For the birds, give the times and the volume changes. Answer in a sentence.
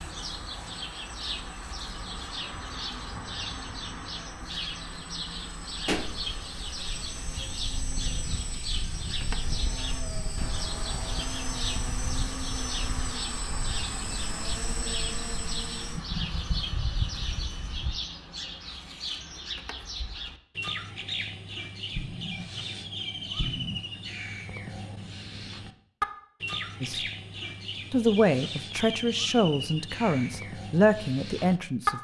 You can hear the birds from 0.0 to 31.9 s, at a steady volume.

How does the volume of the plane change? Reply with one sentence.
The volume of the plane goes up.